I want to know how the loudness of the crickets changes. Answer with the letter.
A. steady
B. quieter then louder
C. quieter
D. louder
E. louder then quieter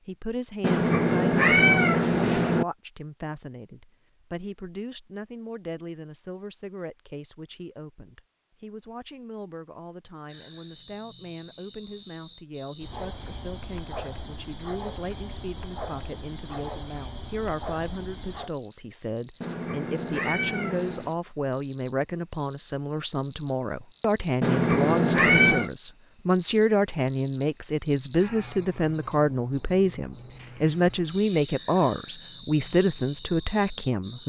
D.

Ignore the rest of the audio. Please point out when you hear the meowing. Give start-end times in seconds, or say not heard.
0.6-2.6, 19.4-21.1, 24.4-25.7.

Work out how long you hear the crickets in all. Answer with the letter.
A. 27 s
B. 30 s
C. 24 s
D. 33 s
C.